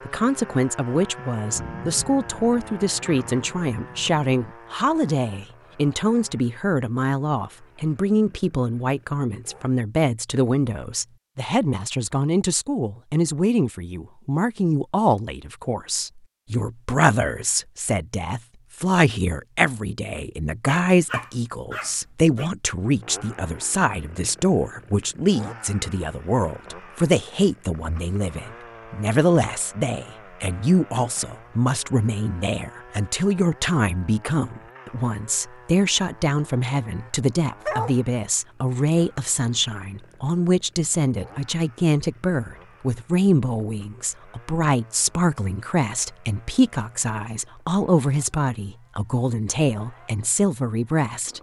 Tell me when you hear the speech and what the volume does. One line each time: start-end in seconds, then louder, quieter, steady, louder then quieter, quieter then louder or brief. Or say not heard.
0.1-51.3 steady.